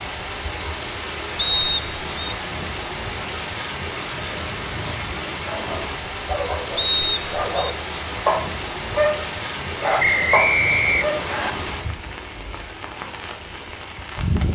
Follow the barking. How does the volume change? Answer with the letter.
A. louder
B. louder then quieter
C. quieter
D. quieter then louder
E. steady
A.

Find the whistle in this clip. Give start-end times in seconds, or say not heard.
1.4-2.4, 6.8-7.7, 10.0-11.5.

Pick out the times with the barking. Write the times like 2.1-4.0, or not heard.
5.5-11.2.